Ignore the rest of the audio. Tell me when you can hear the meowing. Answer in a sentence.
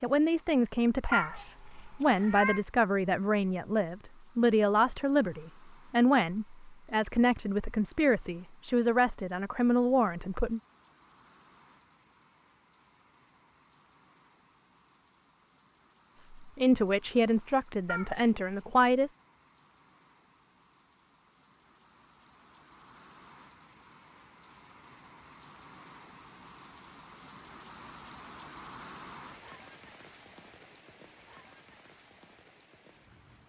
The meowing can be heard from 1.1 to 2.6 s and from 17.9 to 18.6 s.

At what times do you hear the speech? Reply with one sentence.
You can hear the speech from 0.0 to 10.6 s and from 16.1 to 19.1 s.